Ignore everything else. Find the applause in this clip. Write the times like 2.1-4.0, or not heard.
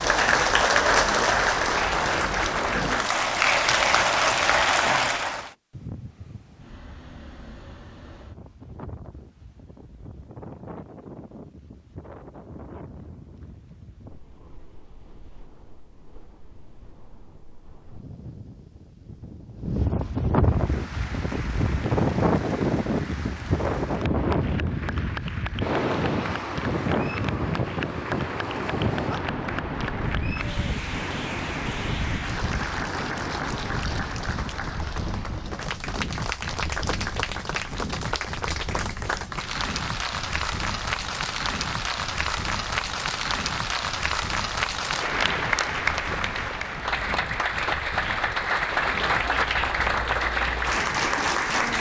0.0-5.5, 20.4-51.7.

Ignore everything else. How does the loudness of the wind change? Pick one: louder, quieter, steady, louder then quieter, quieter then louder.
louder then quieter.